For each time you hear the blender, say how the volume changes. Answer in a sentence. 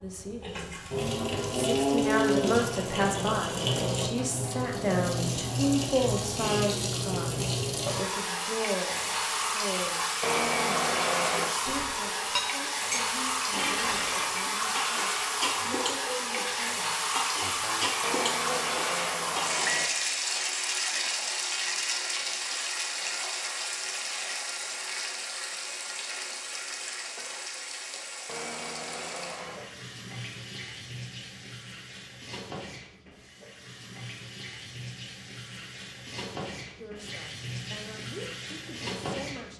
The blender can't be heard in this clip.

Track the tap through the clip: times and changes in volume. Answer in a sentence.
The tap can be heard from 0.0 to 39.5 s, getting quieter.